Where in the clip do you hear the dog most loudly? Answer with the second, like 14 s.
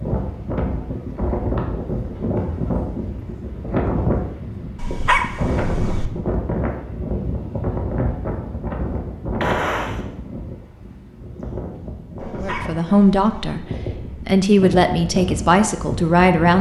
5 s.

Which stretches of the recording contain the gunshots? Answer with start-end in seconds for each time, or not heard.
9.4-10.0.